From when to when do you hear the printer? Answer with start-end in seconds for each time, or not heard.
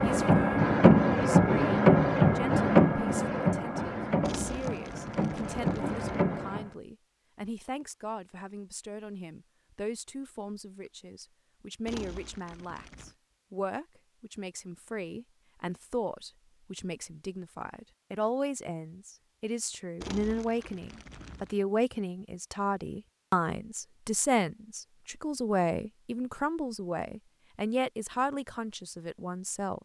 0.0-6.7.